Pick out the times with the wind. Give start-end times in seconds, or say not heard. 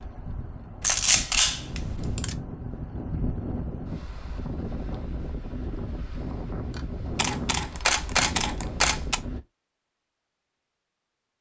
0.0-9.4.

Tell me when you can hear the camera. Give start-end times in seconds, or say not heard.
0.8-2.4, 7.2-9.2.